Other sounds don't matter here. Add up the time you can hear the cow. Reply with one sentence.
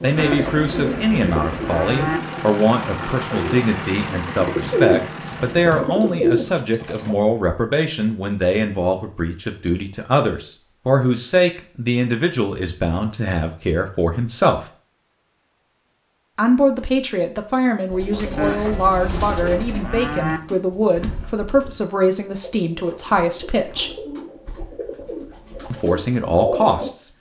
You can hear the cow for 4 seconds altogether.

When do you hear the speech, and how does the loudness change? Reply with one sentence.
The speech can be heard from 0.0 to 14.7 s, at a steady volume; from 16.4 to 24.0 s, at a steady volume; and briefly from 25.7 to 27.1 s.